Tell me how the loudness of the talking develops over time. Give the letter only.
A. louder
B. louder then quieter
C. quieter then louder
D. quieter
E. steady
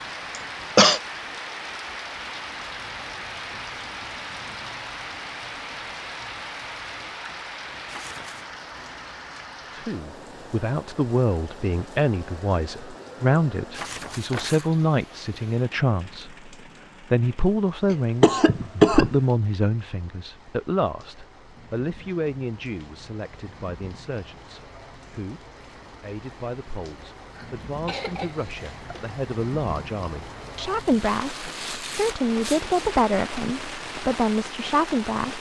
C.